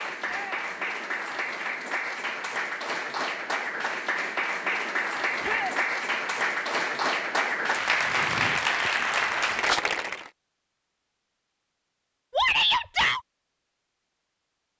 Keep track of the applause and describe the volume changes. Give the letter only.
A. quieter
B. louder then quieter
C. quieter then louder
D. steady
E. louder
E.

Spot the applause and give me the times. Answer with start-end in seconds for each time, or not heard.
0.0-10.3.